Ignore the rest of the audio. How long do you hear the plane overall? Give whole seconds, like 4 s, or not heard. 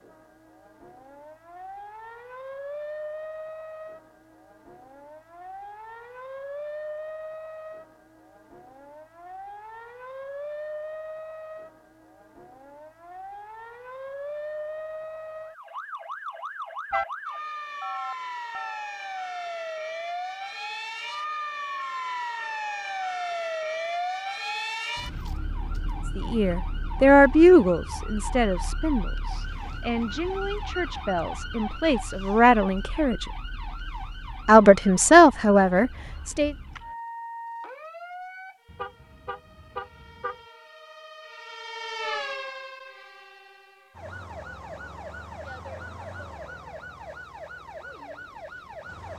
not heard.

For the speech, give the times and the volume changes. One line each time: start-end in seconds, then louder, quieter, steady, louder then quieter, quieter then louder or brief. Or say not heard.
26.1-33.2 quieter then louder
34.5-36.5 brief.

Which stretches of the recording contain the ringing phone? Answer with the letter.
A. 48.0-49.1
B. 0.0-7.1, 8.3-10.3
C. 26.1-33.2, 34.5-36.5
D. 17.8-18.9
D.